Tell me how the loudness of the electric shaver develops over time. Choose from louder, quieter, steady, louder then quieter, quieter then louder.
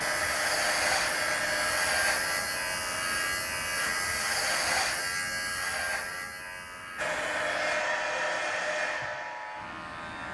quieter.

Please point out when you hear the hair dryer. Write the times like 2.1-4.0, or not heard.
0.0-5.0, 7.0-10.2.